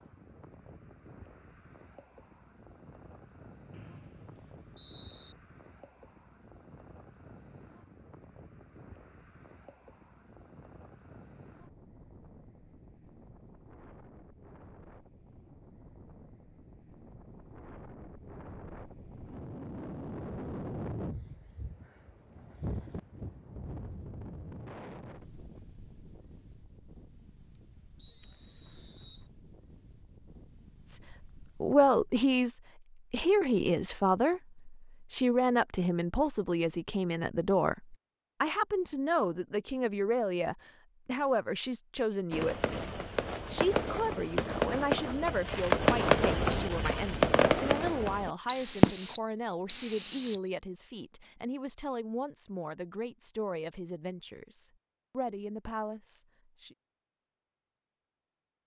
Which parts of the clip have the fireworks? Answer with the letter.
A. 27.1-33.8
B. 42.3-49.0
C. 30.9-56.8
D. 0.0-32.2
B.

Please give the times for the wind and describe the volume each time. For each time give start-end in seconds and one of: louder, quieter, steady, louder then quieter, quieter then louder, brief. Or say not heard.
0.0-32.2 louder then quieter.